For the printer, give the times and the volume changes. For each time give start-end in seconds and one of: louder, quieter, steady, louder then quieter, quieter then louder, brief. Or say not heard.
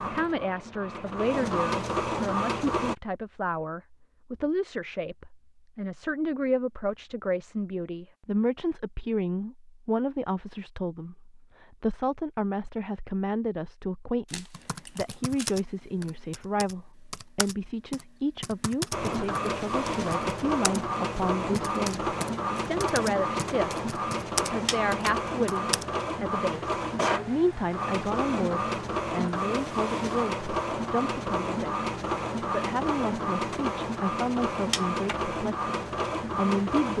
0.0-3.0 brief
18.9-36.9 steady.